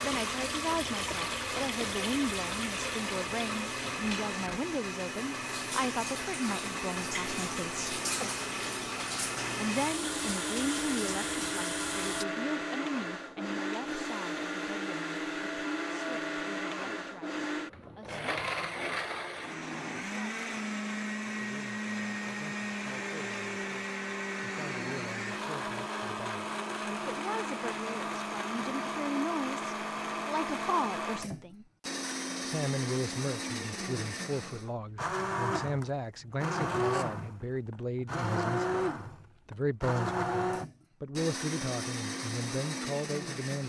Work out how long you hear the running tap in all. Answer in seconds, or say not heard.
12 s.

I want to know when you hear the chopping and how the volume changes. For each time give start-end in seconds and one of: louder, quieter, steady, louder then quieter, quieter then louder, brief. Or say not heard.
not heard.